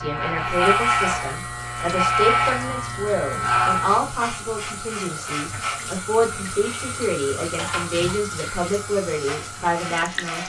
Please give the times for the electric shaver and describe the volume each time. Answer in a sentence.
You can hear the electric shaver from 0.0 to 10.4 s, getting quieter.